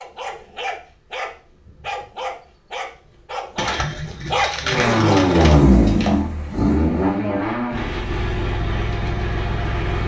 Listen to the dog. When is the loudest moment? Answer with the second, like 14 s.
4 s.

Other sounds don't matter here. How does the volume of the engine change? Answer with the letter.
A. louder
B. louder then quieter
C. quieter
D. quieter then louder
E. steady
C.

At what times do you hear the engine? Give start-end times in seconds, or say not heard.
4.6-10.0.